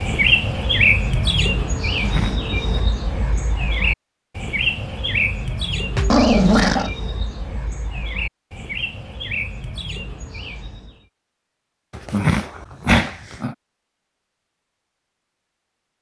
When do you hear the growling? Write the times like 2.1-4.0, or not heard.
1.9-2.8, 6.0-6.9, 11.9-13.6.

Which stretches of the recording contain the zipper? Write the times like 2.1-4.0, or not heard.
not heard.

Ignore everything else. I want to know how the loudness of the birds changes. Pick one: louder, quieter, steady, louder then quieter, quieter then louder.
quieter.